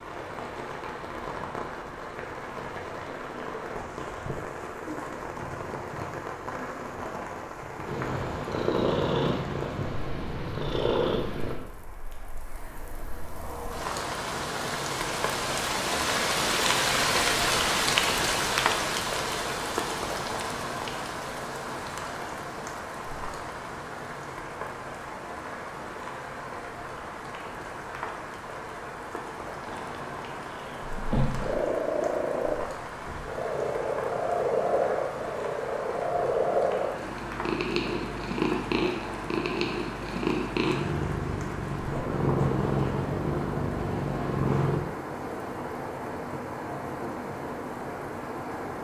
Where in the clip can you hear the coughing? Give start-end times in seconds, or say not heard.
not heard.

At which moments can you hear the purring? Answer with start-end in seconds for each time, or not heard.
7.8-11.6, 29.6-44.8.